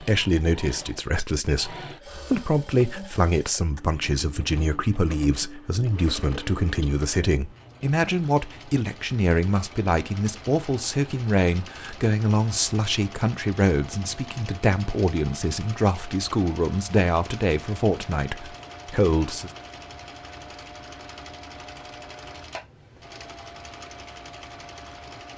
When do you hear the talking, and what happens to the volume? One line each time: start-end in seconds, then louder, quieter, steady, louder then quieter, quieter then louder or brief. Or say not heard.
0.0-19.5 steady.